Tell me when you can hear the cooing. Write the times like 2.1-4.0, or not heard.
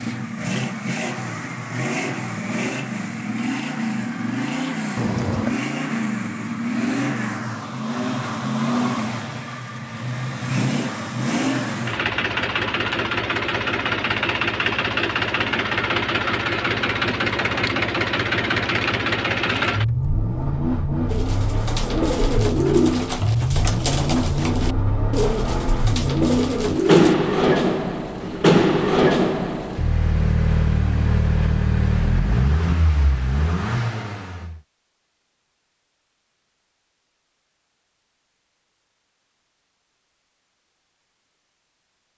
21.1-27.1.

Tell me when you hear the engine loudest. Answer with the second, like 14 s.
29 s.